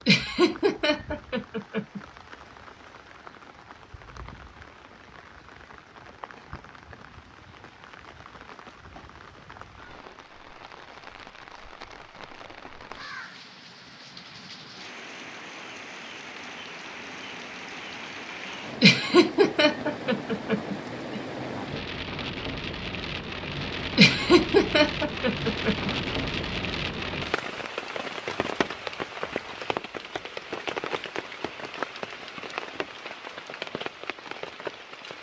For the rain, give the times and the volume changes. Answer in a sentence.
You can hear the rain from 0.0 to 35.1 s, getting louder.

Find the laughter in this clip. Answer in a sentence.
You can hear the laughter from 0.1 to 2.0 s, from 18.8 to 21.2 s and from 23.9 to 25.9 s.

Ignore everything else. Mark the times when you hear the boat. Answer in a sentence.
The boat can't be heard in this clip.